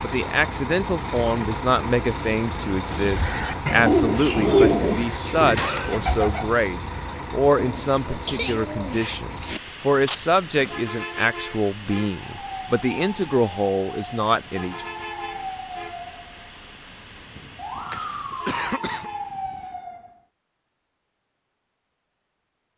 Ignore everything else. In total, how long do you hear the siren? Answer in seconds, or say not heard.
8 s.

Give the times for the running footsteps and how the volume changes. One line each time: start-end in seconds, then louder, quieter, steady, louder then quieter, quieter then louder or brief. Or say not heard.
not heard.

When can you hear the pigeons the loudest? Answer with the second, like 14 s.
5 s.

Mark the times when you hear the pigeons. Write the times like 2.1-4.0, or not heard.
2.9-9.6.